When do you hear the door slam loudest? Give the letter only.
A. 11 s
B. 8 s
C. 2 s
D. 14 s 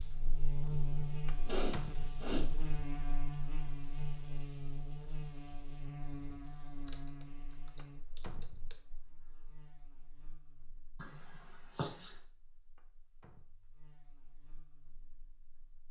C.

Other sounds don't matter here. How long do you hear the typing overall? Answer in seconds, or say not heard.
2 s.